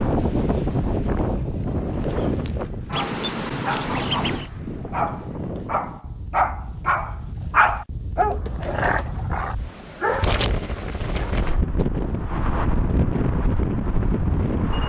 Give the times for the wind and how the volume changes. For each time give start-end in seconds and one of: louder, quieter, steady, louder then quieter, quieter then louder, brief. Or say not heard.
0.0-14.8 quieter then louder.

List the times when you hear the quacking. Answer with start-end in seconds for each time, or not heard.
2.9-4.5.